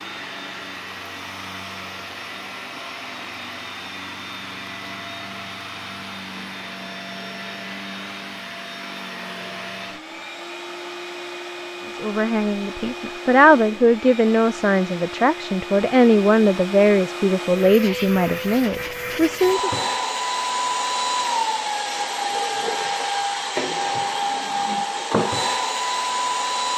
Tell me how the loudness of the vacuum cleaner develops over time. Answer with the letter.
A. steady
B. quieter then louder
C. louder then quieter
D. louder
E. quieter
D.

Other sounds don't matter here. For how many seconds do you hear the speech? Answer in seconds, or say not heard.
8 s.